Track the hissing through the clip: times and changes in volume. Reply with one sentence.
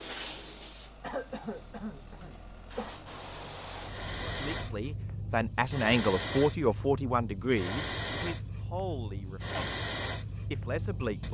The hissing can be heard from 0.0 to 11.2 s, getting louder.